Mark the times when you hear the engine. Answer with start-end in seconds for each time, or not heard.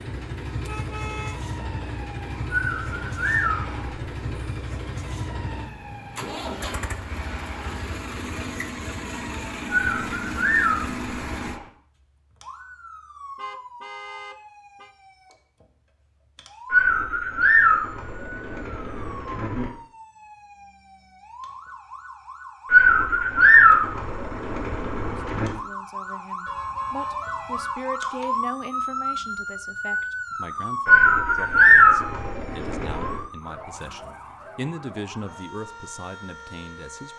0.0-11.6.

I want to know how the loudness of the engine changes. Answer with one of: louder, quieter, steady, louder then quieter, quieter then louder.
steady.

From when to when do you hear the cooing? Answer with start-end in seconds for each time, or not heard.
2.5-4.2, 9.8-11.6, 16.7-19.6, 22.7-25.5, 30.9-33.2.